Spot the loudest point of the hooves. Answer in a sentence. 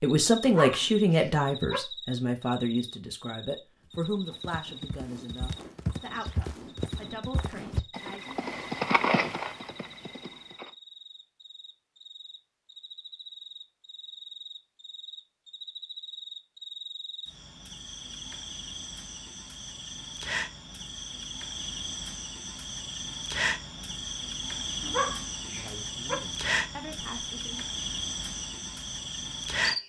The volume of the hooves peaks at 9 seconds.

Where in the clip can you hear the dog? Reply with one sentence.
You can hear the dog from 0.5 to 1.8 s and from 24.8 to 26.1 s.